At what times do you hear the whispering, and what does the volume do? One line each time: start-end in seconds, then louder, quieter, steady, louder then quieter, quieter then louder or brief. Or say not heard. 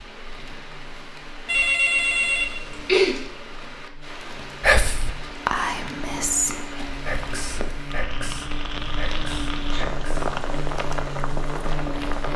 4.6-10.3 quieter.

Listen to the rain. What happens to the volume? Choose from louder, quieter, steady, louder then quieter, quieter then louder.
louder.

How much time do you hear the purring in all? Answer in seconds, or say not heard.
not heard.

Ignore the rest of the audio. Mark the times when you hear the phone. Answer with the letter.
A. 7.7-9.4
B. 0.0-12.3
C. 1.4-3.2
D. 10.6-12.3
C.